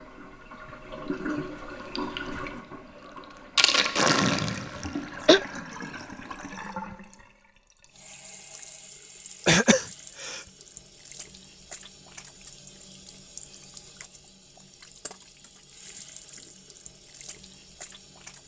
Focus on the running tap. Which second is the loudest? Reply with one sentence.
The loudest moment of the running tap is at 4 seconds.